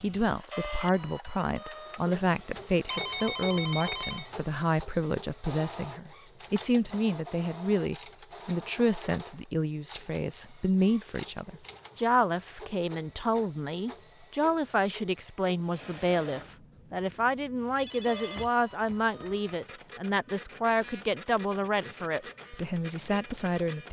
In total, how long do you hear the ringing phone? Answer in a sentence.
The ringing phone can be heard for 3 seconds in total.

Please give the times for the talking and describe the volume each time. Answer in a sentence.
You can hear the talking from 0.0 to 23.8 s, at a steady volume.